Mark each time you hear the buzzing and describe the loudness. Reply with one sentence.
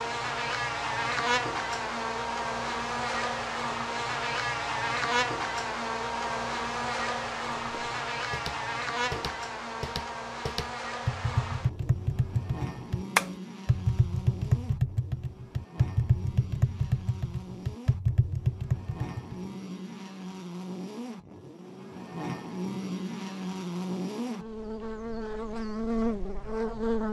The buzzing can be heard from 0.0 to 27.0 s, getting quieter then louder.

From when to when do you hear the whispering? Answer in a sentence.
You can't hear the whispering here.